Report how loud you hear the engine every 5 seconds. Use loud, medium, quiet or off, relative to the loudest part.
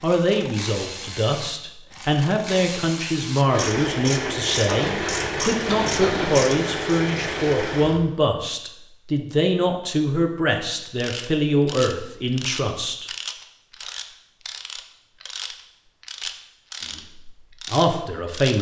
loud, loud, off, off.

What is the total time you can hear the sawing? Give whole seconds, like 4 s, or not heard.
2 s.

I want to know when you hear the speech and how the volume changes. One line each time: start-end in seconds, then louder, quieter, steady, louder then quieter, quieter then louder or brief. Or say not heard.
0.0-13.1 steady
16.9-18.5 brief.